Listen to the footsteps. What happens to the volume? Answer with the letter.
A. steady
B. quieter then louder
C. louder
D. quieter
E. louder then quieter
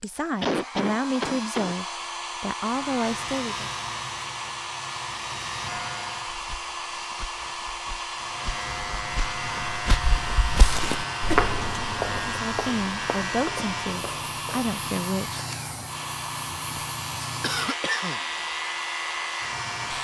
E.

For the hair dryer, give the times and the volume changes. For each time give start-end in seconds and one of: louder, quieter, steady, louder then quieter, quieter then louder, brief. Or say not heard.
0.0-19.9 steady.